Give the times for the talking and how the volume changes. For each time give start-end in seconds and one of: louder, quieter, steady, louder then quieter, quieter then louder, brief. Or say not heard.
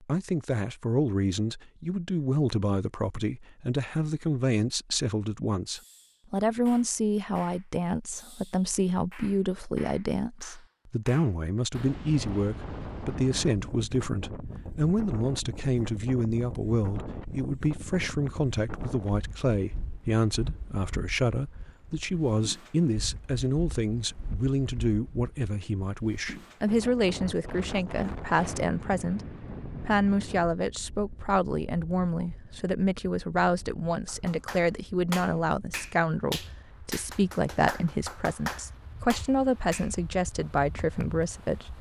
0.0-29.2 steady
29.8-41.7 steady.